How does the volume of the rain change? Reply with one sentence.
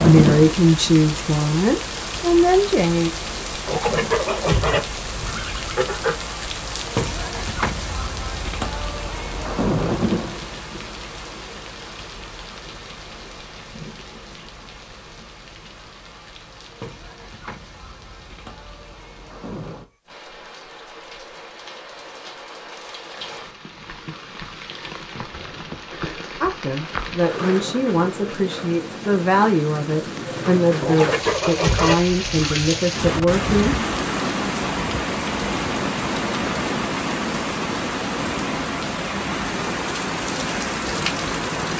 The volume of the rain goes down, then up.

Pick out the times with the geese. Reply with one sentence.
The geese can be heard from 3.6 to 6.2 s and from 30.8 to 32.6 s.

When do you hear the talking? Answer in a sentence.
You can hear the talking from 0.0 to 3.1 s and from 26.4 to 33.8 s.